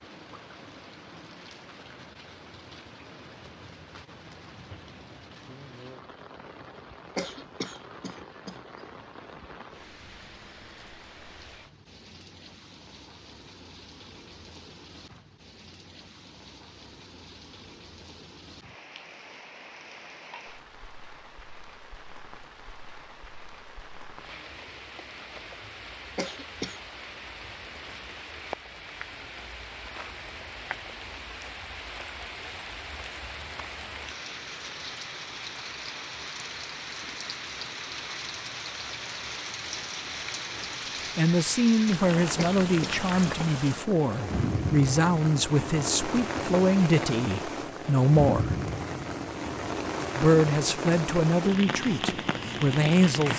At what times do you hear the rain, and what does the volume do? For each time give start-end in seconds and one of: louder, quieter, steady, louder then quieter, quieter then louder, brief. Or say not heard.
0.0-53.3 louder.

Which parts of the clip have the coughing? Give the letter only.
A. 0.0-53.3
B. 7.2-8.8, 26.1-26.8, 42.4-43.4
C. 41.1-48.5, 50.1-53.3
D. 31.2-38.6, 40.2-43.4
B.